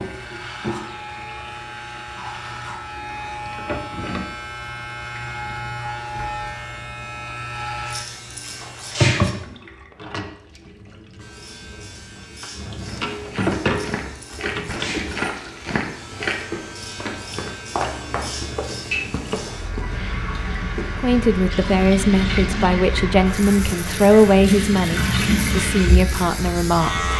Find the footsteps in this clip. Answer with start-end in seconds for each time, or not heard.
12.8-21.1.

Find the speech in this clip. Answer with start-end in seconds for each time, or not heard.
21.0-27.1.